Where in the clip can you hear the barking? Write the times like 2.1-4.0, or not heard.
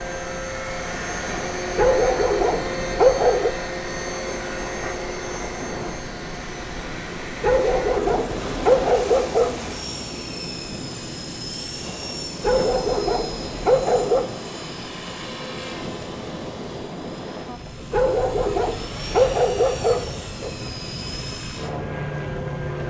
1.8-3.5, 7.4-9.6, 12.4-14.3, 17.9-20.5.